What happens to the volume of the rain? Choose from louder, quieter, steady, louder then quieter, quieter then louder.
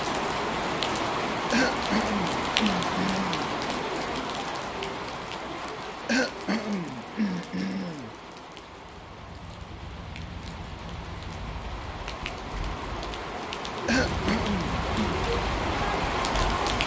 quieter then louder.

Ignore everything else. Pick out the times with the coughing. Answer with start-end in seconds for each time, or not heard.
1.5-3.5, 6.0-8.1, 13.8-15.2.